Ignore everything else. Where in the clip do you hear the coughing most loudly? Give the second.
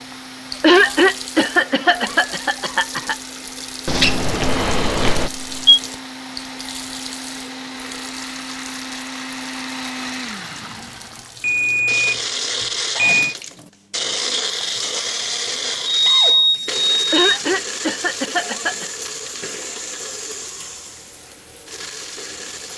1 s.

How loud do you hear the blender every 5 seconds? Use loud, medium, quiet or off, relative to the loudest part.
quiet, medium, loud, loud, medium.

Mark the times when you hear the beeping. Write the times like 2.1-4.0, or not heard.
3.9-5.8, 11.4-13.3, 15.8-17.1.